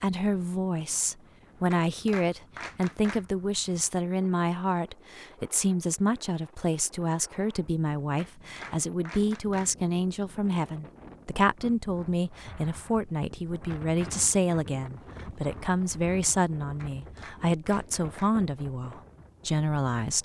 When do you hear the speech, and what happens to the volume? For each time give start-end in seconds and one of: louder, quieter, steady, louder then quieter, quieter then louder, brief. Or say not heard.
0.0-20.2 steady.